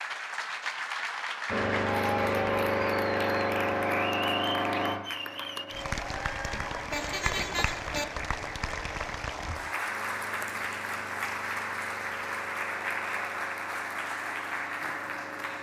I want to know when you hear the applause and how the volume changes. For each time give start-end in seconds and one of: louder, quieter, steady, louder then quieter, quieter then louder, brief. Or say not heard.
0.0-15.5 steady.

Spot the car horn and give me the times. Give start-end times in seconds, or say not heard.
6.5-8.1.